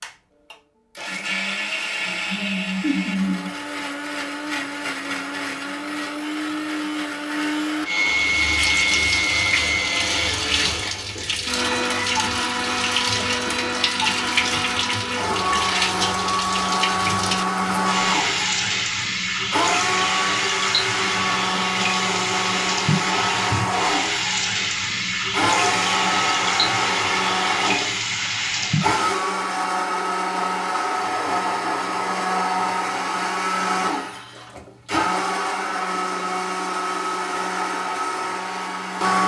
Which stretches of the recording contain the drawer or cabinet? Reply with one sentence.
The drawer or cabinet can't be heard in this clip.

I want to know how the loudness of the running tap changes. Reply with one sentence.
The volume of the running tap stays about the same.